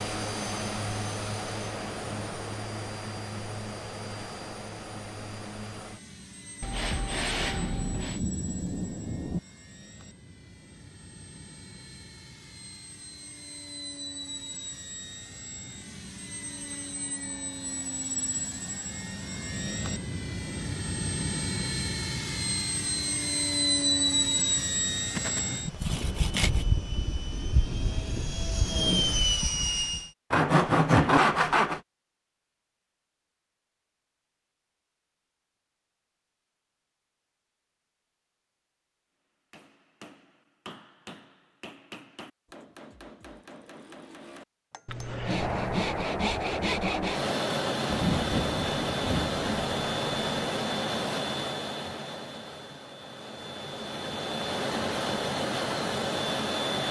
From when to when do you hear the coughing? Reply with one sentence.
You can't hear the coughing here.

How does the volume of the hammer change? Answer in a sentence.
The volume of the hammer stays about the same.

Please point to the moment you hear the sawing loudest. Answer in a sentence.
The loudest moment of the sawing is at 31 seconds.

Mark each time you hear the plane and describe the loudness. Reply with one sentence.
You can hear the plane from 0.0 to 30.1 s, getting quieter then louder; and from 45.2 to 56.8 s, getting quieter then louder.